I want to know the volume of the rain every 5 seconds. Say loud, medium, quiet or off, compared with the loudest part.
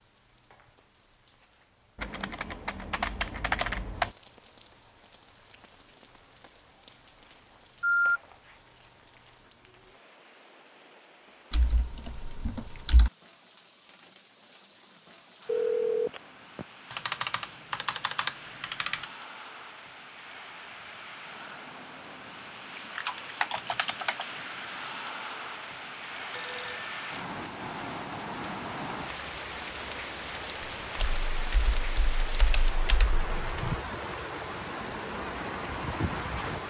quiet, quiet, quiet, quiet, medium, loud, loud, loud.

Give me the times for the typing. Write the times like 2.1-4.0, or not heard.
1.9-4.1, 11.5-13.1, 16.9-19.1, 22.8-24.2, 30.9-33.8.